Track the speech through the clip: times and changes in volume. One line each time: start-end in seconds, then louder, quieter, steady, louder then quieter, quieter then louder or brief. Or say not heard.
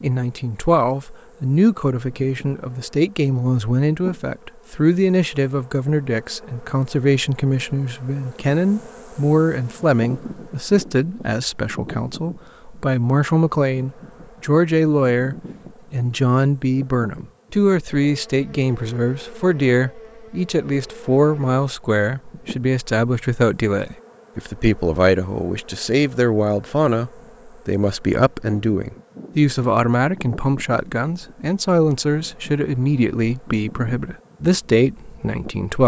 0.0-35.8 steady.